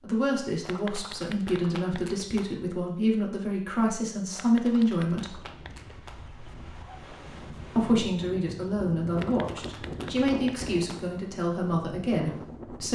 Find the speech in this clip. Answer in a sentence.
The speech can be heard from 0.0 to 5.3 s and from 7.8 to 12.9 s.